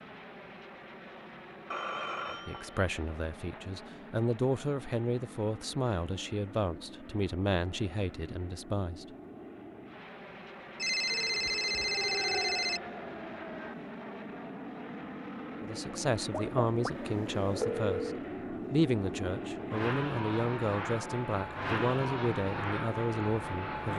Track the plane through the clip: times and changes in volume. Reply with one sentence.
The plane can be heard from 0.0 to 23.9 s, getting louder.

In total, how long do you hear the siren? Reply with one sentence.
You can hear the siren for 3 seconds altogether.